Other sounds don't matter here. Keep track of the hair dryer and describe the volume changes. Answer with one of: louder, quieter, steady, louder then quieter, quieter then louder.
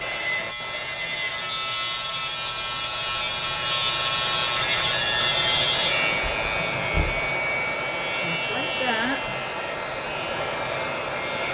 louder.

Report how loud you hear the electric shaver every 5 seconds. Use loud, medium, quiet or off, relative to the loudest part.
loud, loud, medium.